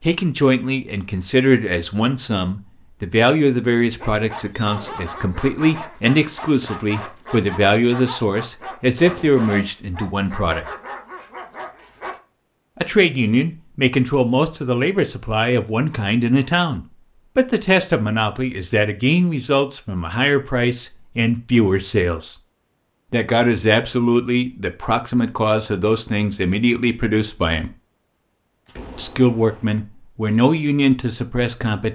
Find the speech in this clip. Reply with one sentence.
The speech can be heard from 0.0 to 10.7 s, from 12.8 to 22.4 s, from 23.1 to 27.7 s and from 28.9 to 31.9 s.